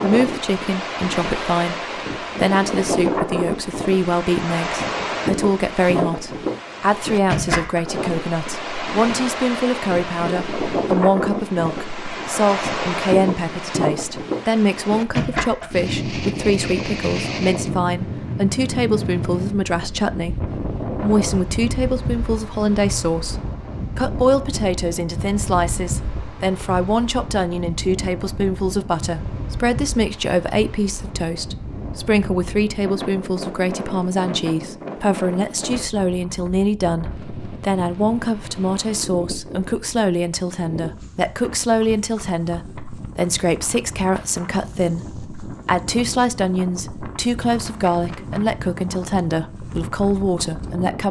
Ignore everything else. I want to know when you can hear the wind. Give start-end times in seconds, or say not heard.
0.0-51.0.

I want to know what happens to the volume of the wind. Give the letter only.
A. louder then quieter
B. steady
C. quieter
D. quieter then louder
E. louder
C.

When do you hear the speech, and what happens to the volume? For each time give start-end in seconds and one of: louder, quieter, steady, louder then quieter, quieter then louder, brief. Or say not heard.
0.0-51.0 steady.